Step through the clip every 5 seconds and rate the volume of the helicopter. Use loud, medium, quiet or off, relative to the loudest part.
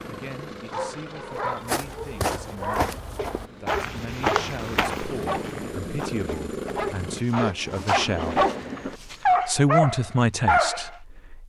medium, loud, off.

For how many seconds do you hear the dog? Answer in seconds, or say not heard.
10 s.